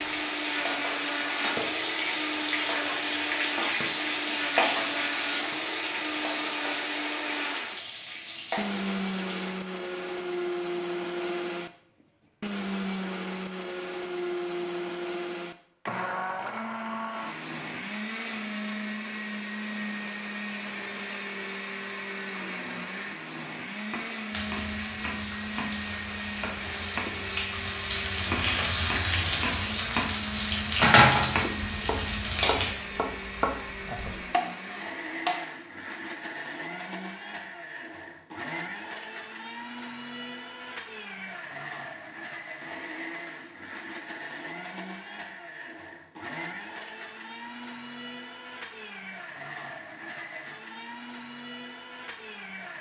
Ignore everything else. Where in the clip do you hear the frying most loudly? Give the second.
31 s.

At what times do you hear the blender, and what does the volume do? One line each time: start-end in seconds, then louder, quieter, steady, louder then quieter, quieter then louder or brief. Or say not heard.
0.0-52.7 quieter.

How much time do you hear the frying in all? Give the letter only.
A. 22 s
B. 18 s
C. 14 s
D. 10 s
B.